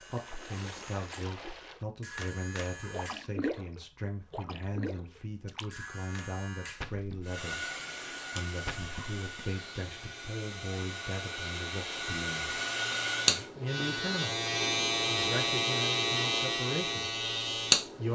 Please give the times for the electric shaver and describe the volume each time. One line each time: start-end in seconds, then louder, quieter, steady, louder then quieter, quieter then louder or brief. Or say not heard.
0.0-18.1 louder.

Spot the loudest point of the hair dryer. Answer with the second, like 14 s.
13 s.